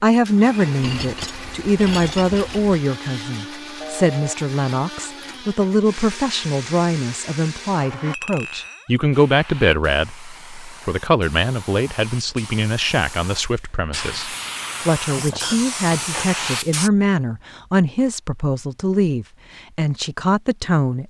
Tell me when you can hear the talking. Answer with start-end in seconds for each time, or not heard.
0.0-21.0.